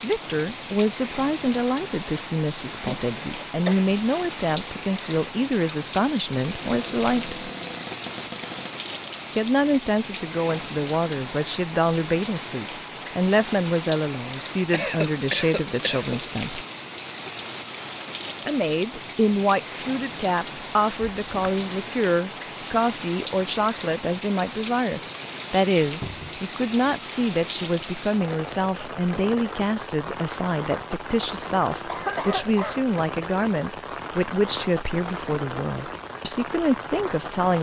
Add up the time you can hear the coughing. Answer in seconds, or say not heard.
4 s.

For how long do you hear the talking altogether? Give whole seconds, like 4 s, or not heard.
34 s.